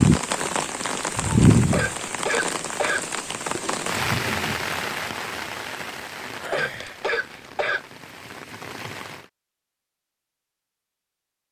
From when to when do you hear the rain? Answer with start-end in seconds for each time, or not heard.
0.0-9.3.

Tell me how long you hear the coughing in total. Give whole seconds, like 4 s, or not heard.
3 s.